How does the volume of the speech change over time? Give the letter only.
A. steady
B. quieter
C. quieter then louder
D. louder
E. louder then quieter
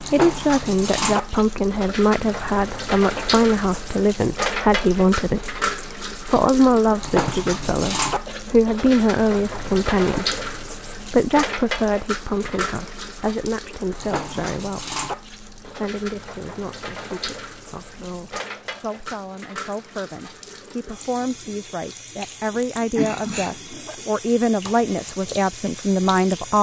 C.